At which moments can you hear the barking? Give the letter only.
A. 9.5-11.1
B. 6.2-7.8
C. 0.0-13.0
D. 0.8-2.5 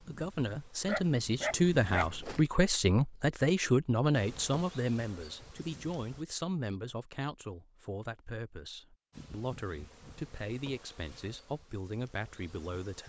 D.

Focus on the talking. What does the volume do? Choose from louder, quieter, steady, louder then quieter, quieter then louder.
quieter.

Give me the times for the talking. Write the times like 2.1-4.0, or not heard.
0.0-13.0.